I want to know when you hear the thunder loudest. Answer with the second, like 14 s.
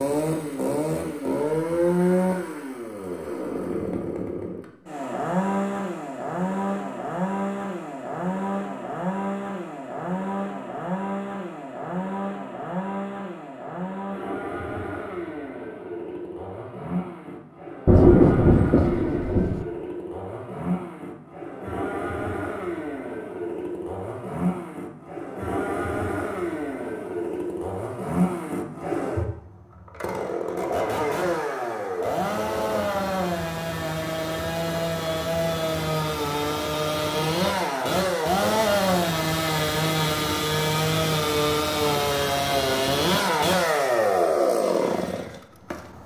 18 s.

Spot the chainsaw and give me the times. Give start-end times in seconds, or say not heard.
0.0-46.0.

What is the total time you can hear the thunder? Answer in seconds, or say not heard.
2 s.